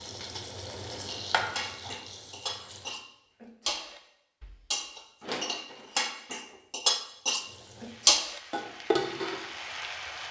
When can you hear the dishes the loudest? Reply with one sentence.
The volume of the dishes peaks at 8 seconds.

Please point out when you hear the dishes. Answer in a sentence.
You can hear the dishes from 1.1 to 9.4 s.